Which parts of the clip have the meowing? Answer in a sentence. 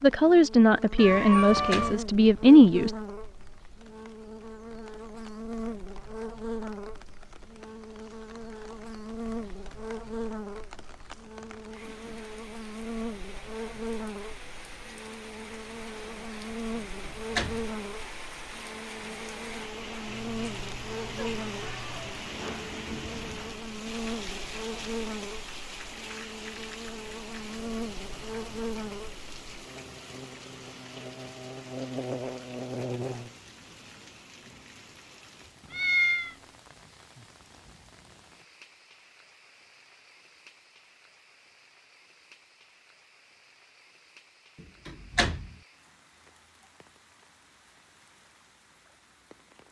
You can hear the meowing from 0.9 to 1.9 s, from 20.1 to 22.1 s and from 35.7 to 36.4 s.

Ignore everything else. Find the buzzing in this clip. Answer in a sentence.
The buzzing can be heard from 0.0 to 33.4 s.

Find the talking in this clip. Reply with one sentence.
The talking can be heard from 0.0 to 2.9 s.